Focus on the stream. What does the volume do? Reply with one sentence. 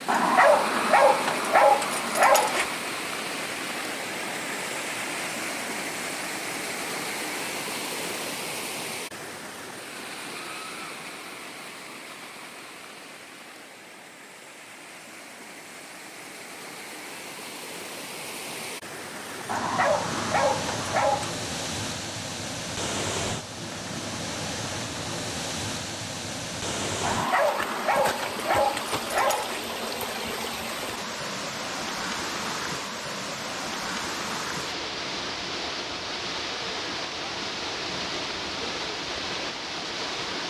The volume of the stream goes down, then up.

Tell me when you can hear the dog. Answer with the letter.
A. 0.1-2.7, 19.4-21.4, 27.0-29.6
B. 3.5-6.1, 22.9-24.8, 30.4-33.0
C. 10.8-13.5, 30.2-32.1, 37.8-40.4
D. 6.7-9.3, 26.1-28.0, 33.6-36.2
A.